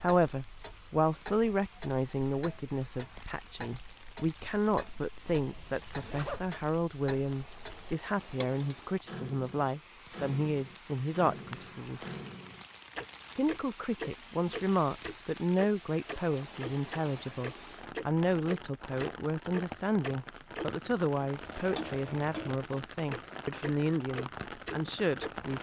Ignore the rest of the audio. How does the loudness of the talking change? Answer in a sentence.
The volume of the talking stays about the same.